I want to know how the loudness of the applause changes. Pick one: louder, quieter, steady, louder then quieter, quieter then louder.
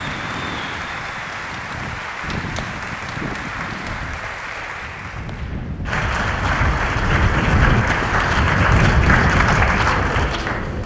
louder.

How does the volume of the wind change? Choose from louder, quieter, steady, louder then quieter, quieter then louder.
louder.